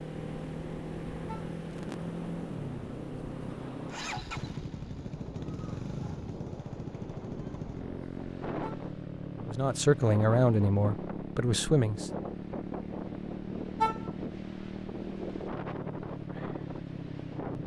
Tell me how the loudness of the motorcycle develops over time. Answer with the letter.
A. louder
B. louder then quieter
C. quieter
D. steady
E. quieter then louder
D.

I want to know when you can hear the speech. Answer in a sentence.
You can hear the speech from 9.4 to 12.1 s.